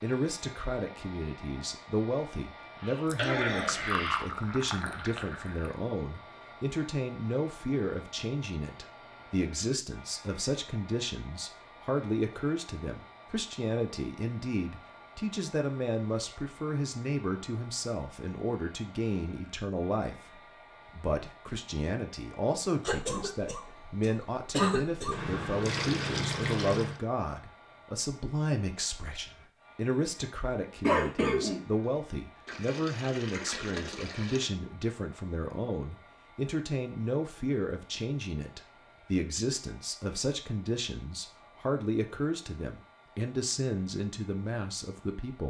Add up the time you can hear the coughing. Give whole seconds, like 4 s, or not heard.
5 s.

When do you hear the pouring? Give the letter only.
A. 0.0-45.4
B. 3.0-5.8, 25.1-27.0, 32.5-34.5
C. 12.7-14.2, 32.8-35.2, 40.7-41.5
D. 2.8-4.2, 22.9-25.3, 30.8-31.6
B.